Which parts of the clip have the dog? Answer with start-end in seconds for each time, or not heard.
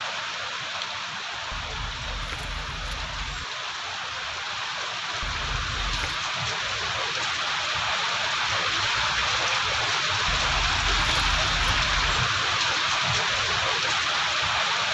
not heard.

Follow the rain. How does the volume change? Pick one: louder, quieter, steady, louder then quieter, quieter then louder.
louder.